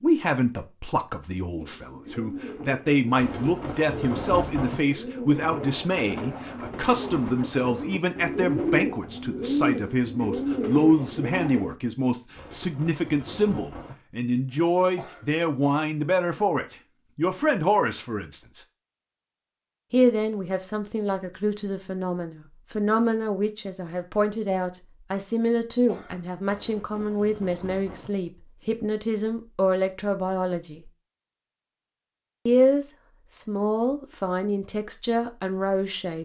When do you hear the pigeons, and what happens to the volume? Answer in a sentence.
You can hear the pigeons from 1.5 to 11.8 s, getting louder.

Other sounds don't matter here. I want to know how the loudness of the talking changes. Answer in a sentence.
The volume of the talking stays about the same.